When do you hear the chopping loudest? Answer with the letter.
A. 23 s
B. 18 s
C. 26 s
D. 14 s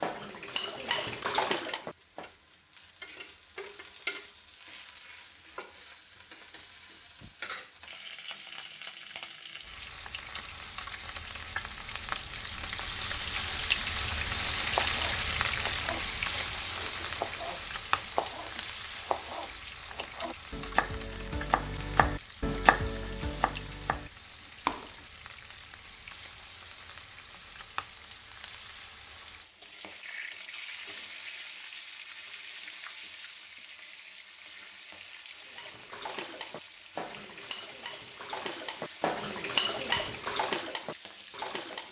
A.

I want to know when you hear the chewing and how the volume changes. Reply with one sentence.
The chewing can't be heard in this clip.